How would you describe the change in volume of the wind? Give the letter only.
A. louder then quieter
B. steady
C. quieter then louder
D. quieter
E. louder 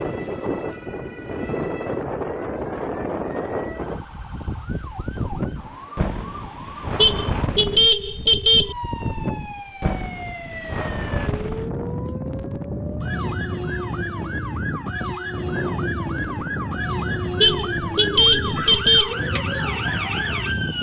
B.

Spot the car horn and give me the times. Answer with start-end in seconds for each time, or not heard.
7.0-8.8, 17.4-19.1.